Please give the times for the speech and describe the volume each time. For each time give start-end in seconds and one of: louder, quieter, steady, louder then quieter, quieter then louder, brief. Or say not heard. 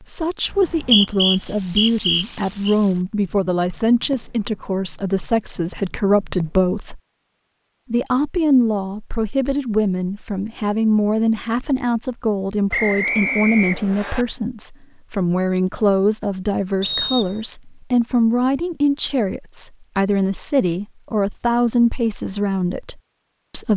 0.0-7.0 steady
7.9-23.7 steady.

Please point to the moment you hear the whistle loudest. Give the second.
1 s.